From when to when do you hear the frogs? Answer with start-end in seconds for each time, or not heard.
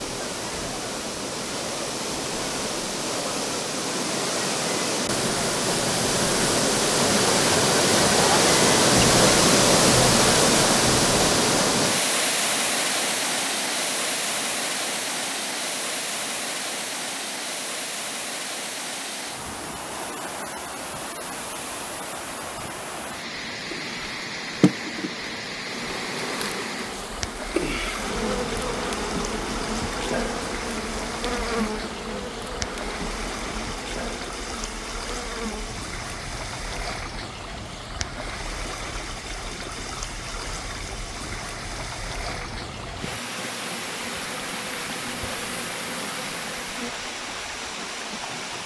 not heard.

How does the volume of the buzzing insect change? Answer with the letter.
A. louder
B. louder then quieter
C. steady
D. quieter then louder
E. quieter
D.